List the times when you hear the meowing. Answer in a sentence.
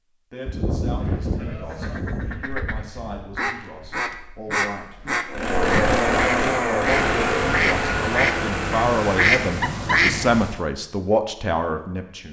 You can't hear the meowing here.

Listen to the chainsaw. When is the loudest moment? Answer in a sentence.
The volume of the chainsaw peaks at 6 seconds.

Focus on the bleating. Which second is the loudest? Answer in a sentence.
The volume of the bleating peaks at 1 second.